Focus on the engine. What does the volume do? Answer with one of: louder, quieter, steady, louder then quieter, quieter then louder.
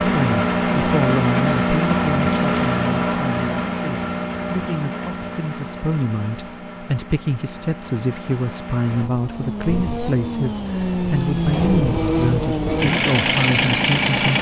quieter then louder.